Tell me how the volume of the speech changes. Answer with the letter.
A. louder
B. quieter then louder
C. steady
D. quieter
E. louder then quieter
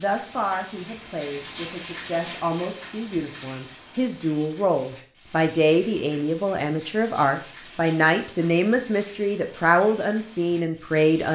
A.